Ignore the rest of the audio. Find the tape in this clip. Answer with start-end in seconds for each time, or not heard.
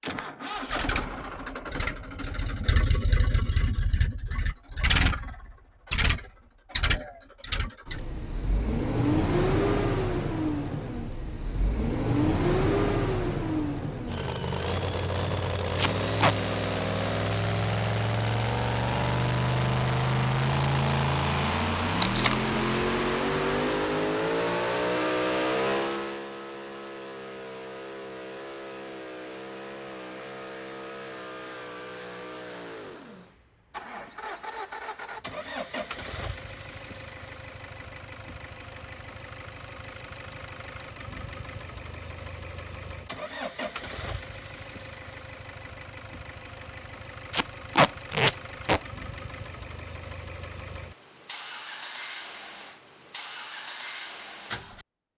15.8-16.4, 21.9-22.4, 47.3-48.8.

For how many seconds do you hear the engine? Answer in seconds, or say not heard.
55 s.